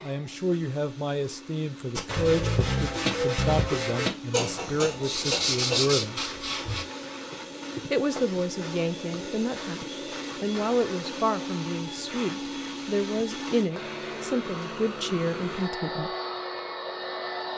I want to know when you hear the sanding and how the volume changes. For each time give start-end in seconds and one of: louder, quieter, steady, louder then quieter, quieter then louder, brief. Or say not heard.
1.9-6.8 steady.